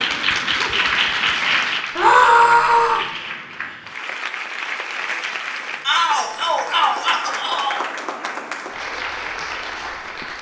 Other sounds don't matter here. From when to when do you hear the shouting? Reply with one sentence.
The shouting can be heard from 1.9 to 3.0 s and from 5.8 to 7.8 s.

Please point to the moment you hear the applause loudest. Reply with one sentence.
The loudest moment of the applause is at 1 second.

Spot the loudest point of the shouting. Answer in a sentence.
The volume of the shouting peaks at 2 seconds.